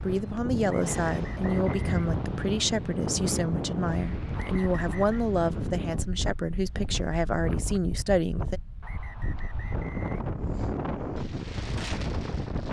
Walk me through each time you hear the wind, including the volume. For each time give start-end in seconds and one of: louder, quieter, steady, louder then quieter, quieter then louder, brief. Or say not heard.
0.0-12.6 quieter then louder.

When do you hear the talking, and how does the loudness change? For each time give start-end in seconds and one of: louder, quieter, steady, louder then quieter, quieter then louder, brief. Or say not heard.
0.0-8.6 steady.